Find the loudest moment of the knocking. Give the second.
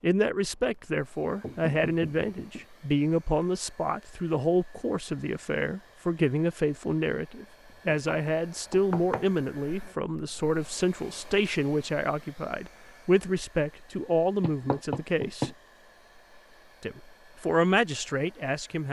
15 s.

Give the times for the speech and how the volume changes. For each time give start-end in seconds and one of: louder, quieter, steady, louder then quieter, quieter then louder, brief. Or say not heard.
0.0-15.5 steady
16.8-18.8 brief.